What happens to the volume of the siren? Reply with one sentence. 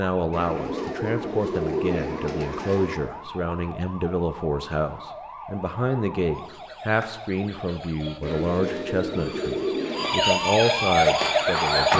The volume of the siren goes up.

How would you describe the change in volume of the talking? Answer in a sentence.
The loudness of the talking stays about the same.